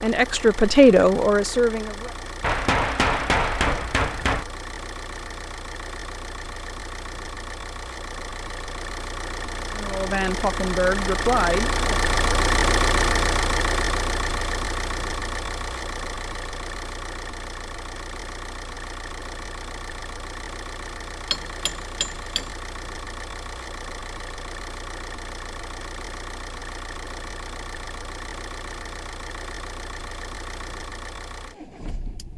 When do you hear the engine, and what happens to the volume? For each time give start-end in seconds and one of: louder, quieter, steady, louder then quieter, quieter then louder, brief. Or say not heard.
0.0-32.3 louder then quieter.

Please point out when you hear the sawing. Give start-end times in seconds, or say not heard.
not heard.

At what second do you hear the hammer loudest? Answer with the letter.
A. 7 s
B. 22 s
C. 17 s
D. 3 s
D.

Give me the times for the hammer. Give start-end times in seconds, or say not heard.
2.4-4.5, 21.3-22.4.